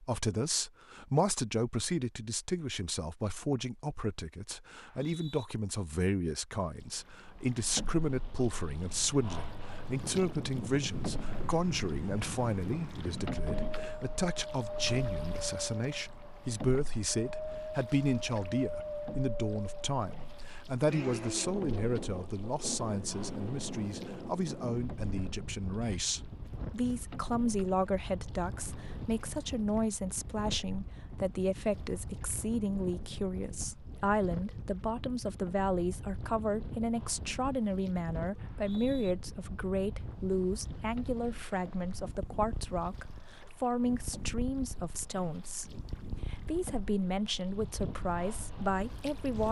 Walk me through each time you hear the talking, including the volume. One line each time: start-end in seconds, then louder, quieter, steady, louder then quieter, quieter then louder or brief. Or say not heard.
0.0-49.4 steady.